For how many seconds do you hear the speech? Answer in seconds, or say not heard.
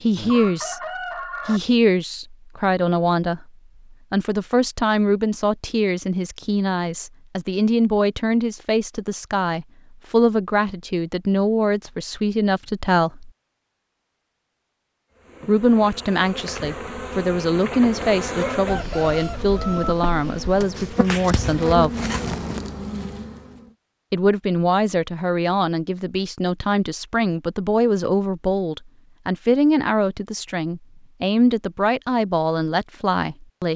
28 s.